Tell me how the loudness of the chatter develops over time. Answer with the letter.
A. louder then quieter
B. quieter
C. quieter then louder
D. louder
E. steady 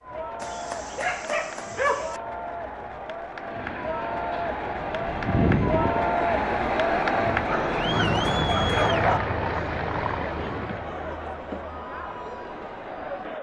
A.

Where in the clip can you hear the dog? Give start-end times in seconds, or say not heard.
0.4-2.2, 7.5-9.2.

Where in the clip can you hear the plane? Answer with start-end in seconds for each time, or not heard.
3.4-10.9.